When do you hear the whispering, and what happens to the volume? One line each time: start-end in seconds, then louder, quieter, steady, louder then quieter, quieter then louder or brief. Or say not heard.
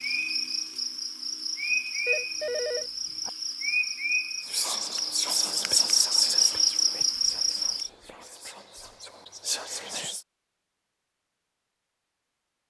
4.4-10.2 quieter then louder.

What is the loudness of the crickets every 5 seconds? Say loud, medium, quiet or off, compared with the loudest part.
medium, loud, off.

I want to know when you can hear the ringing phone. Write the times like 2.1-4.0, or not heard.
2.0-3.3.